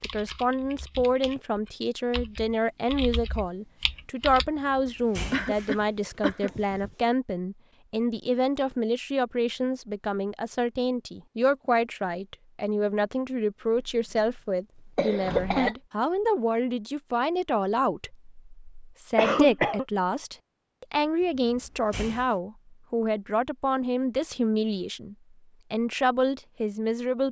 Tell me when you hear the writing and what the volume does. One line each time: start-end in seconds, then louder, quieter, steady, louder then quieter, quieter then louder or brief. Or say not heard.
not heard.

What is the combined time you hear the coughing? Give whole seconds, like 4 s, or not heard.
3 s.